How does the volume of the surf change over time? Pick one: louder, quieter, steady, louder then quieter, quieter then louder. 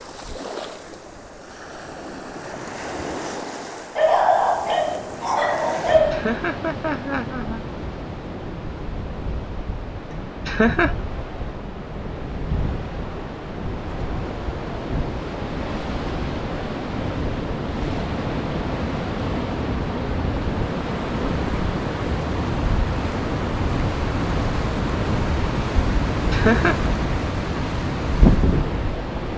louder.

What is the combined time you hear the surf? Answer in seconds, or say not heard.
29 s.